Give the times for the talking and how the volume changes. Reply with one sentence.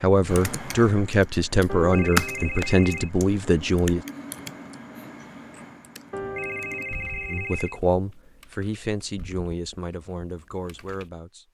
You can hear the talking from 0.0 to 4.0 s, at a steady volume; and from 7.3 to 11.4 s, getting quieter.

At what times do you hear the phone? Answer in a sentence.
You can hear the phone from 1.6 to 3.1 s and from 6.1 to 7.8 s.